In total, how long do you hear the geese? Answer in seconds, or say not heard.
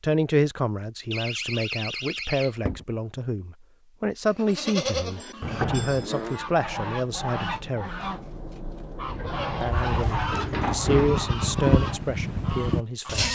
7 s.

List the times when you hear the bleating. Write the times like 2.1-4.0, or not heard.
4.3-6.4, 9.0-13.3.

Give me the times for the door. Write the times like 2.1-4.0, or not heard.
1.1-2.9, 5.4-6.1, 9.1-11.2.